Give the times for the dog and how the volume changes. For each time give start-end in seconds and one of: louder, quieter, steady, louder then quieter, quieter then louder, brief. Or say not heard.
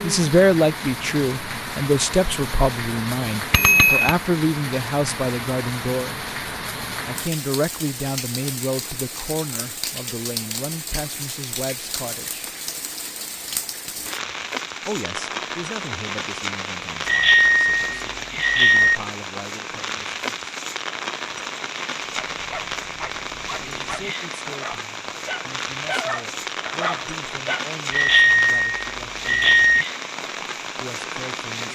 22.0-27.6 louder.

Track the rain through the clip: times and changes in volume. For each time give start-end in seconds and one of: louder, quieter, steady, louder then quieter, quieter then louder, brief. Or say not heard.
0.0-31.6 steady.